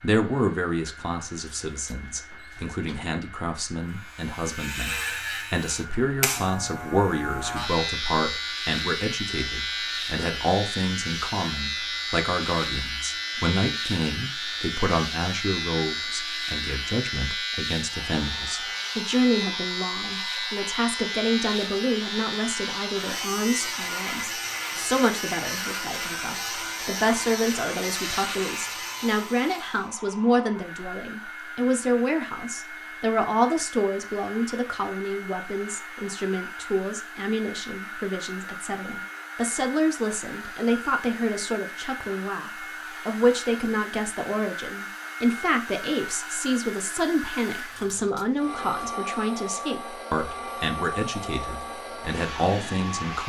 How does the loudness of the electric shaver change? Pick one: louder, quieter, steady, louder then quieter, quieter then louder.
steady.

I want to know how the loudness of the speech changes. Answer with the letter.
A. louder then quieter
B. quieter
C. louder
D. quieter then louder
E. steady
E.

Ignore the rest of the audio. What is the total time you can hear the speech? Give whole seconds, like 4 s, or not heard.
53 s.